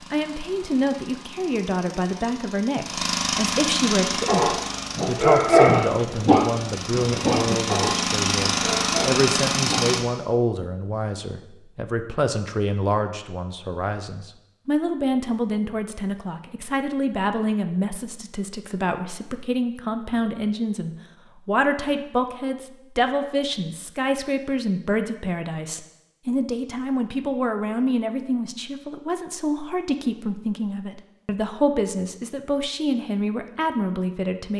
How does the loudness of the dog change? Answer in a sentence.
The volume of the dog goes down.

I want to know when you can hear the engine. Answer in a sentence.
The engine can be heard from 0.0 to 10.1 s.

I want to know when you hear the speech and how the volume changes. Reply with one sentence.
You can hear the speech from 0.0 to 34.5 s, at a steady volume.